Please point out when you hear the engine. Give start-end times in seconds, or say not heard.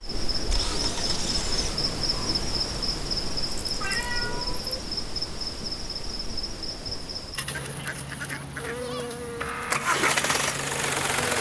0.3-1.8, 9.2-11.3.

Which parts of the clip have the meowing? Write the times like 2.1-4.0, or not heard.
3.8-4.8.